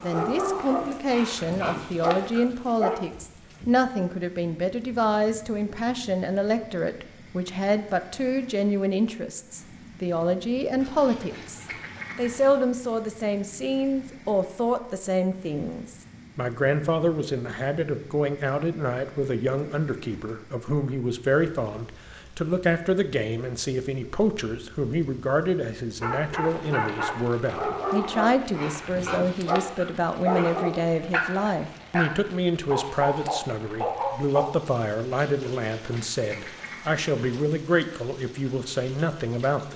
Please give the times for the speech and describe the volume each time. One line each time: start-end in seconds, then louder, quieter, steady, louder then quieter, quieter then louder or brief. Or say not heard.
0.0-39.7 steady.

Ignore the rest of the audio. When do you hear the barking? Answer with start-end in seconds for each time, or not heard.
0.0-3.0, 26.0-34.5.